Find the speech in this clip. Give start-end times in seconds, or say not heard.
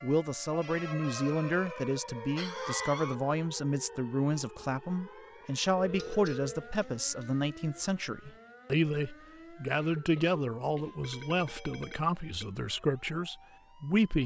0.0-14.2.